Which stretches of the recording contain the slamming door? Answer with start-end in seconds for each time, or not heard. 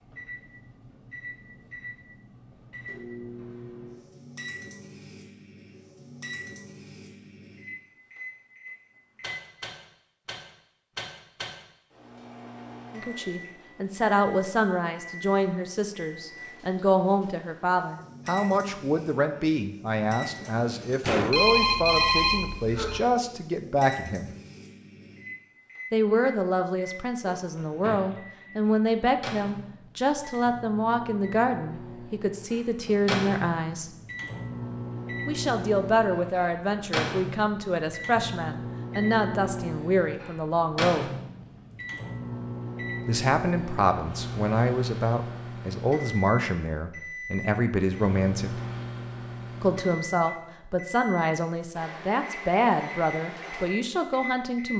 20.2-21.4.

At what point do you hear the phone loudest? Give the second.
22 s.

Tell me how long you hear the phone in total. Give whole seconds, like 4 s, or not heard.
2 s.